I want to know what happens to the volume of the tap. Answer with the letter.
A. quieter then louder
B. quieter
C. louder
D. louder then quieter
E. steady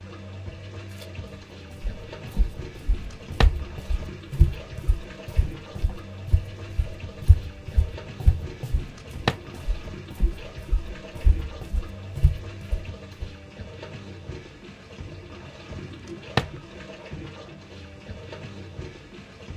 E.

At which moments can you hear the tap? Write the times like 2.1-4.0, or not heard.
0.0-19.5.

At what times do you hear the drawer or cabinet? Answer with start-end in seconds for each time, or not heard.
2.8-3.6, 8.7-9.5, 15.8-16.6.